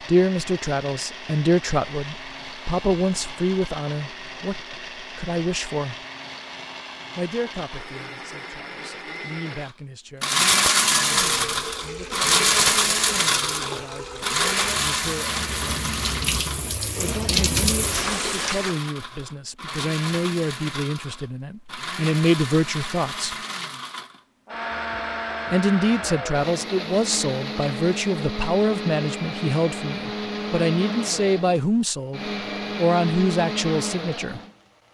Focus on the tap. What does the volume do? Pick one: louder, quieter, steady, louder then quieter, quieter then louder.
louder.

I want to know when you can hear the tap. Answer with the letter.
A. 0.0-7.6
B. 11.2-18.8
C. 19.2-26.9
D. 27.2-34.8
B.